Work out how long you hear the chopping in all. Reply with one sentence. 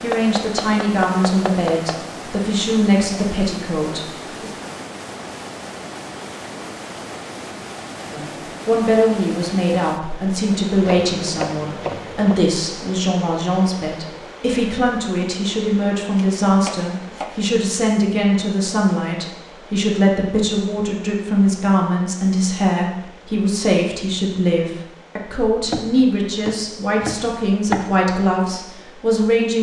The chopping can be heard for 7 seconds in total.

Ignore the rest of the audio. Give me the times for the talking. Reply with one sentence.
You can hear the talking from 0.0 to 4.5 s and from 8.0 to 29.5 s.